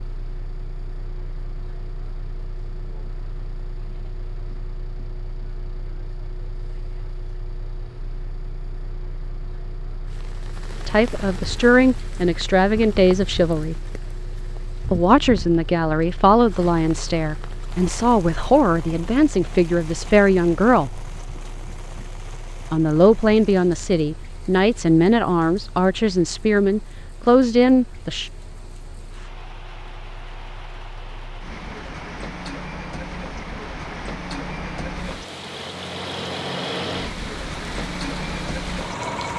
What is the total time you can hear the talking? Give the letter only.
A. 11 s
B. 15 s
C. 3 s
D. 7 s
B.